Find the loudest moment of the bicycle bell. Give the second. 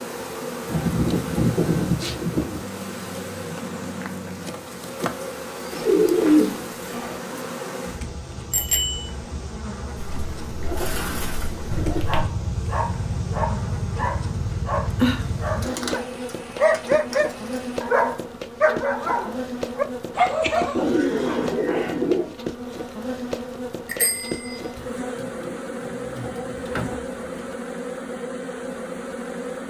9 s.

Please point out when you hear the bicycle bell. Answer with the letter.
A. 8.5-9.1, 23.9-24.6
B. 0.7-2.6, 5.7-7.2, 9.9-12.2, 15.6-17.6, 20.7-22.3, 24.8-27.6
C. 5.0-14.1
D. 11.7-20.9
A.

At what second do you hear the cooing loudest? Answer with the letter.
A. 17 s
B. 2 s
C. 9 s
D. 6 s
D.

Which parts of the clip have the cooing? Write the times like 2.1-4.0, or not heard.
0.7-2.6, 5.7-7.2, 9.9-12.2, 15.6-17.6, 20.7-22.3, 24.8-27.6.